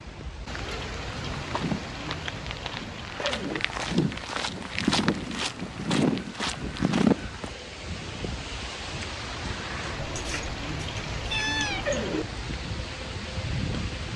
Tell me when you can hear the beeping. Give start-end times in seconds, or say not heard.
not heard.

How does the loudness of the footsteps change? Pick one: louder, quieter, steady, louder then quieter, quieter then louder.
louder.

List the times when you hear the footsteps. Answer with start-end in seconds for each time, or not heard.
1.1-7.5.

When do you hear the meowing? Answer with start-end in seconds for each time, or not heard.
9.9-12.0.